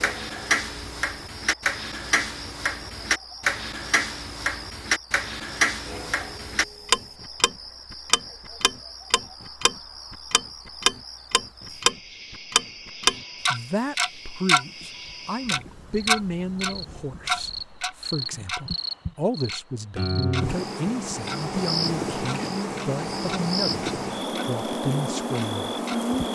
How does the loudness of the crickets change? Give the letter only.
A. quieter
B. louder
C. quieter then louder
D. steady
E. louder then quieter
B.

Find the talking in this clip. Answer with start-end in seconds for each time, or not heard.
13.5-26.2.